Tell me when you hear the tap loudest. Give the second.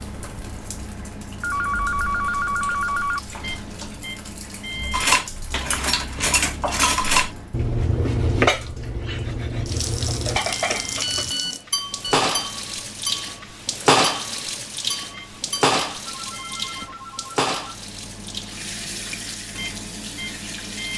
14 s.